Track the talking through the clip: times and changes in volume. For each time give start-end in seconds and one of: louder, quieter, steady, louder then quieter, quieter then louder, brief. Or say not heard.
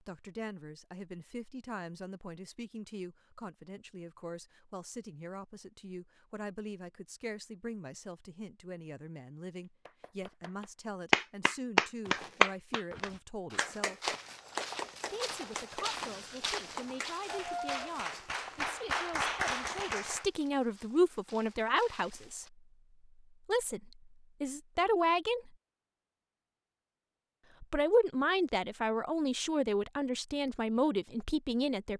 0.0-14.2 steady
15.1-22.4 louder
23.4-25.5 brief
27.6-31.9 steady.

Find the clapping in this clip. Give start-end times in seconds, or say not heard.
9.8-20.2.